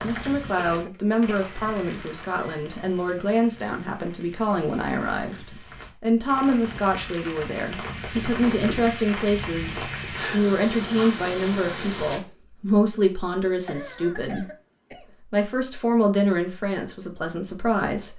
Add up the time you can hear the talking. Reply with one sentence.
You can hear the talking for 17 seconds altogether.